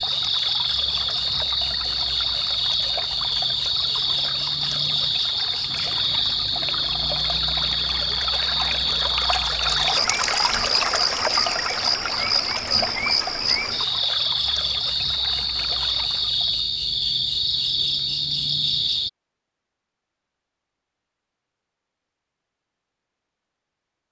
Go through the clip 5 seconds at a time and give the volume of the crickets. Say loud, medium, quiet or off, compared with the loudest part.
loud, loud, loud, loud, off.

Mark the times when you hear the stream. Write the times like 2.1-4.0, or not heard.
0.0-16.6.